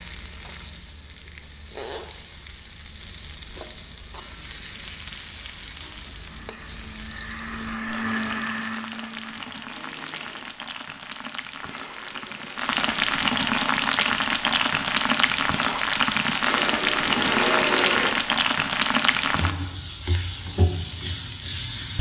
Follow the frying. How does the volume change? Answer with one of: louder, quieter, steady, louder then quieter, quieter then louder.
louder.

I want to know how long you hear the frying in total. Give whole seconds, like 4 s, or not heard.
22 s.